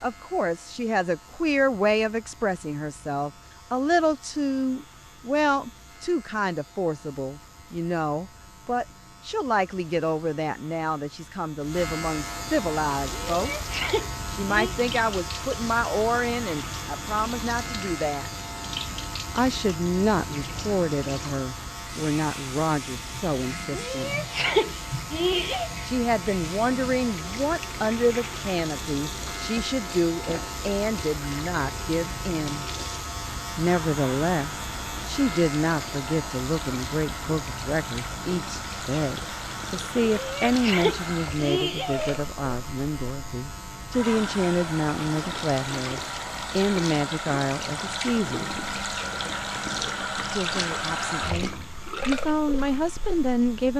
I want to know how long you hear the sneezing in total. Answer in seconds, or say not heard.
6 s.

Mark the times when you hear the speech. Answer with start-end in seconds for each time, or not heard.
0.0-13.5, 14.3-18.3, 19.3-24.1, 25.9-32.6, 33.5-48.6, 50.3-53.7.